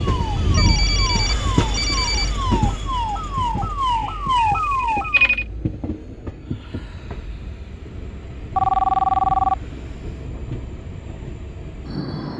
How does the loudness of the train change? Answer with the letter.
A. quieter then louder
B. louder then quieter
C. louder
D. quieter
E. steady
D.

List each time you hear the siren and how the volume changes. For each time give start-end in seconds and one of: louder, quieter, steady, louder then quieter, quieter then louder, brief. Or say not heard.
0.1-5.3 louder.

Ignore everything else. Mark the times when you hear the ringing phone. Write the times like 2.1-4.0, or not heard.
0.3-2.3, 4.4-5.5, 8.6-9.6.